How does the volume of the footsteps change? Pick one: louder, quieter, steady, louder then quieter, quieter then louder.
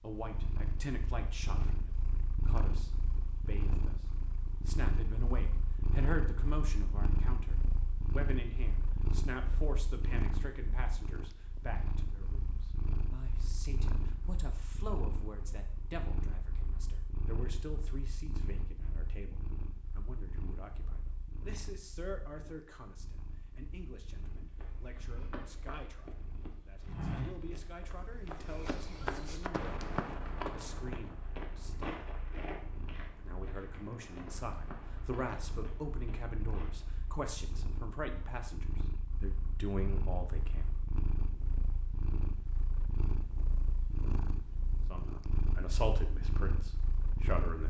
louder then quieter.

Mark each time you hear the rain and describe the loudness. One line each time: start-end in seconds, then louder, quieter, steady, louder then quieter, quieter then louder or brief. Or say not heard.
not heard.